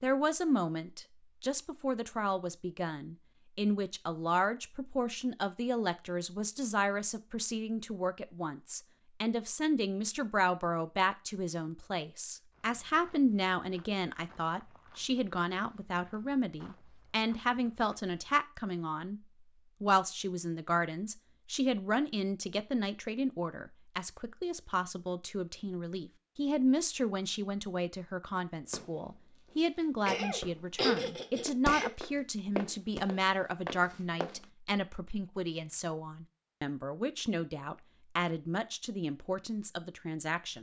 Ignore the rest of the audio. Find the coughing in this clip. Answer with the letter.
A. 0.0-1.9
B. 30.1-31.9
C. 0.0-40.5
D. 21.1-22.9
B.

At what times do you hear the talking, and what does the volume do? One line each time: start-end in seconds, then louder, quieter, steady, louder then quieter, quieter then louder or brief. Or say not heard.
0.0-40.5 steady.